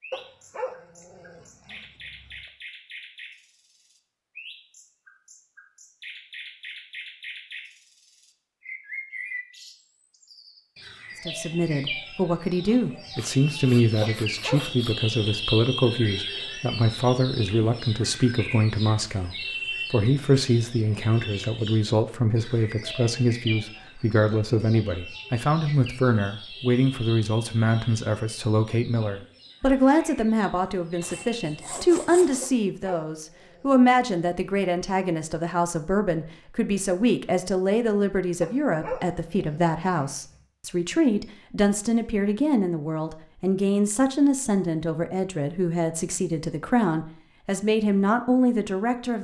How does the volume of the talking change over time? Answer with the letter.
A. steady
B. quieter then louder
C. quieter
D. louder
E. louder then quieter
A.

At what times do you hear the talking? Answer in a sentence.
You can hear the talking from 11.2 to 49.1 s.